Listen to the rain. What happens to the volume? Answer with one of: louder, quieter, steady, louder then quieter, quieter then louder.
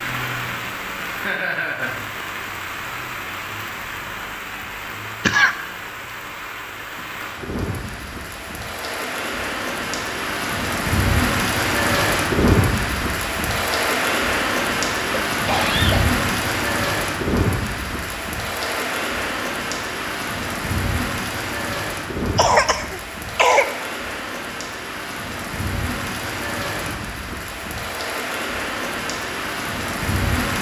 louder then quieter.